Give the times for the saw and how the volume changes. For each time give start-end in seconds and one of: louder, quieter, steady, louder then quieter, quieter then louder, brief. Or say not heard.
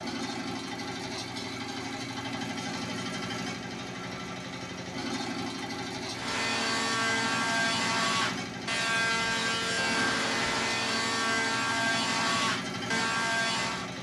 6.1-13.9 steady.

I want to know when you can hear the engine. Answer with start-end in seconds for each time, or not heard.
0.0-13.9.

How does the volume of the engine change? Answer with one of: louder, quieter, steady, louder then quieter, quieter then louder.
steady.